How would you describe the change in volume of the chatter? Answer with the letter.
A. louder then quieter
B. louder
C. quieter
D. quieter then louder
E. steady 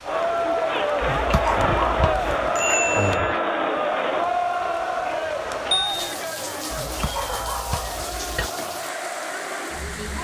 C.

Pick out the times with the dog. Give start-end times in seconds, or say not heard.
1.0-2.3, 6.7-8.5.